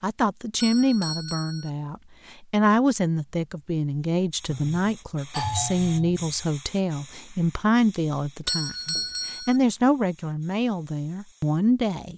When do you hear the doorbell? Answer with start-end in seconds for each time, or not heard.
0.6-1.7, 4.5-6.3, 8.4-9.6.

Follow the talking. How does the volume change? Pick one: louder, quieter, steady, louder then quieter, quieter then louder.
steady.